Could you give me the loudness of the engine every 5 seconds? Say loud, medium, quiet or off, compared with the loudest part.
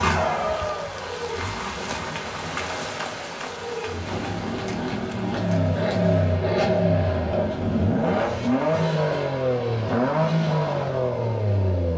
medium, loud, loud.